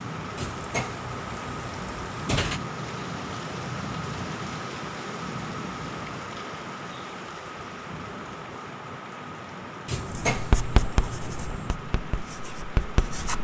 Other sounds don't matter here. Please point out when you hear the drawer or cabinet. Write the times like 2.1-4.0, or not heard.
0.3-2.6, 9.8-11.7.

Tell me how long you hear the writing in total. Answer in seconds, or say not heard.
3 s.